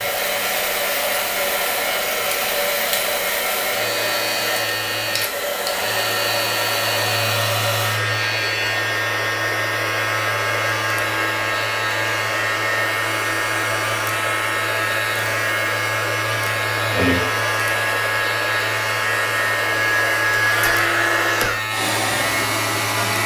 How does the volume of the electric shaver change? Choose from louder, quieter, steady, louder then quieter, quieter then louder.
steady.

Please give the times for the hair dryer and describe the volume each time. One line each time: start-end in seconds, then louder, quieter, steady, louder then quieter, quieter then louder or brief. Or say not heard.
0.0-23.2 steady.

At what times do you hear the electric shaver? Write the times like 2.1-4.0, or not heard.
0.0-23.2.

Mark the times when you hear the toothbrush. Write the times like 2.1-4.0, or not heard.
not heard.